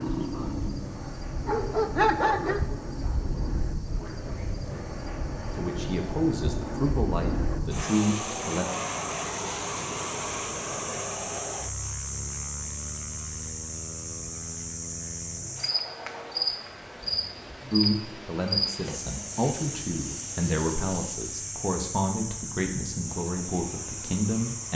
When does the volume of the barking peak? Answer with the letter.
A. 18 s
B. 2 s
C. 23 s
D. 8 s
B.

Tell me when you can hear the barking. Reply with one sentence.
The barking can be heard from 0.0 to 2.6 s.